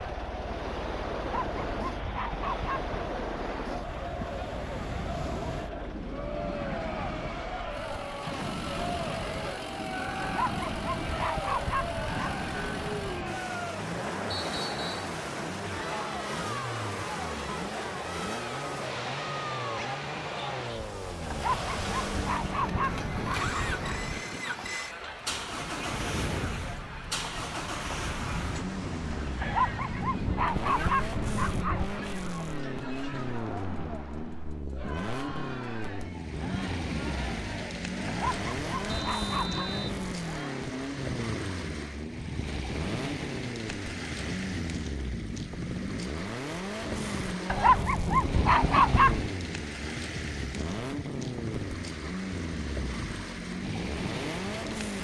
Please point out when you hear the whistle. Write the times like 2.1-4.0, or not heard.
14.3-14.9, 38.9-40.0.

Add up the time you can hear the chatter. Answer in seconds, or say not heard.
41 s.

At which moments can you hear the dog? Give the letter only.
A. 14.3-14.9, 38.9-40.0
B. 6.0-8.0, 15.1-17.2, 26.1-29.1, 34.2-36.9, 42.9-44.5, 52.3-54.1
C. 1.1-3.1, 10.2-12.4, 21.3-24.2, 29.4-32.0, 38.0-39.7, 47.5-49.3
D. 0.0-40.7
C.